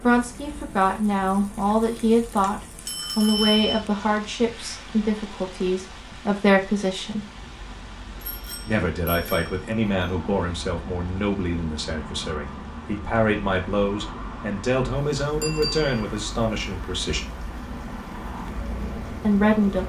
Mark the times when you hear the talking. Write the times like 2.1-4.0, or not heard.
0.0-7.2, 8.7-17.3, 19.1-19.8.